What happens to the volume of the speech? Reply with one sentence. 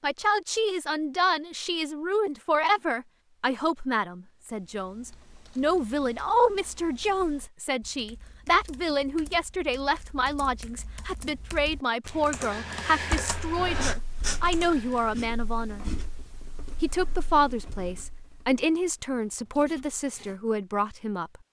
The volume of the speech stays about the same.